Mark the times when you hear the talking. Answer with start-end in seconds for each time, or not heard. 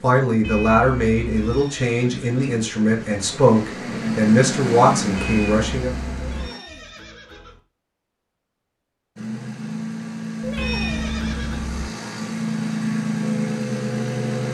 0.0-5.9.